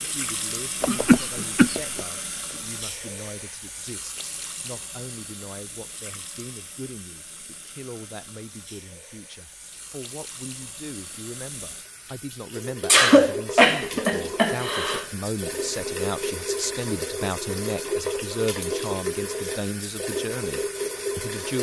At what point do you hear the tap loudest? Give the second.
18 s.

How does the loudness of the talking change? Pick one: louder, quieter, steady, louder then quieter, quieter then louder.
louder.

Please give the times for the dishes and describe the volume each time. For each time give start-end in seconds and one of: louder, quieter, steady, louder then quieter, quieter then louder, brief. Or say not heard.
not heard.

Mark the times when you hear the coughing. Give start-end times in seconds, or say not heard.
0.8-2.0, 12.8-15.1.